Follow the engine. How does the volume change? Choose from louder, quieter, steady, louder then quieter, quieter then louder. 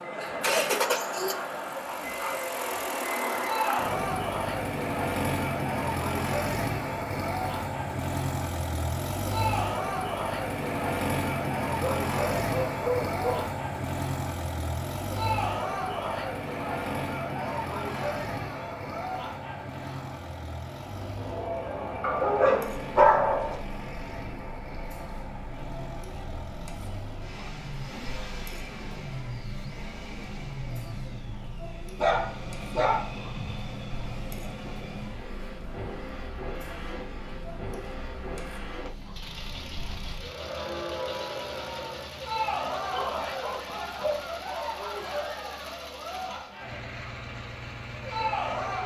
quieter.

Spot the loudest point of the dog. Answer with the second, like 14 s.
23 s.